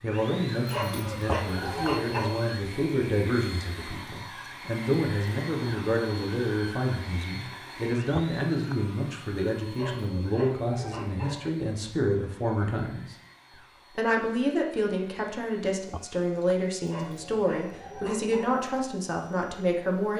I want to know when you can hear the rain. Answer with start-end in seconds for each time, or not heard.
not heard.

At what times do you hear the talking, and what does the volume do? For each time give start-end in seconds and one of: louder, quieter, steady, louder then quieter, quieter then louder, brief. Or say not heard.
0.0-13.2 steady
13.9-20.1 steady.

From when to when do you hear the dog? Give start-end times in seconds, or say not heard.
0.7-2.4, 9.7-11.5, 16.9-18.6.